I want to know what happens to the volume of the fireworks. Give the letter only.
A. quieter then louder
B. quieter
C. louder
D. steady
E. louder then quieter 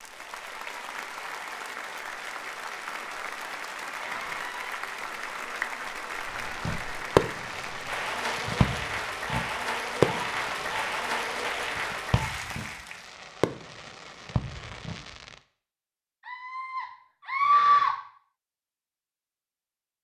A.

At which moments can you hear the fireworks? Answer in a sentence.
You can hear the fireworks from 6.5 to 15.3 s.